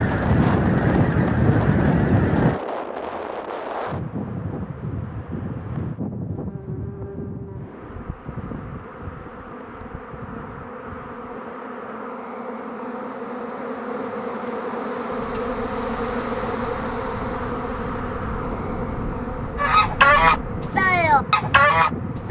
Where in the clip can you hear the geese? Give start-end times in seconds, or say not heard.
0.0-2.6, 19.6-22.2.